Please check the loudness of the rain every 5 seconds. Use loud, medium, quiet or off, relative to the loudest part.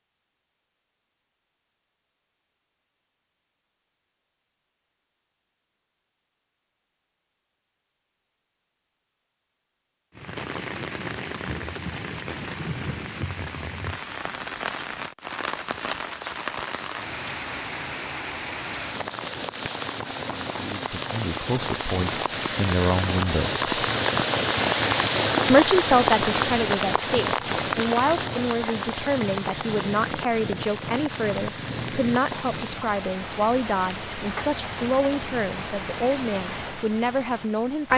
off, off, medium, medium, loud, loud, medium, medium.